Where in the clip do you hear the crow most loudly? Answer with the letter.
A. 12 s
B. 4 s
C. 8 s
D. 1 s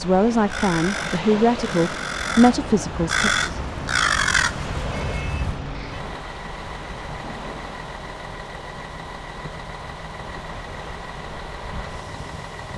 B.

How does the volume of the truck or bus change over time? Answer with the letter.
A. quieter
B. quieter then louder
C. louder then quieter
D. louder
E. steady
E.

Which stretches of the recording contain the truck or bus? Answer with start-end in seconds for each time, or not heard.
3.4-12.7.